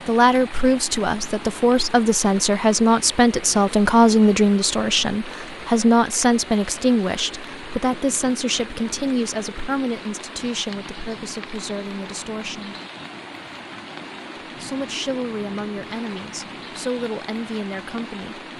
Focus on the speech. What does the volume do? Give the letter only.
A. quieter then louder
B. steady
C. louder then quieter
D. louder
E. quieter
E.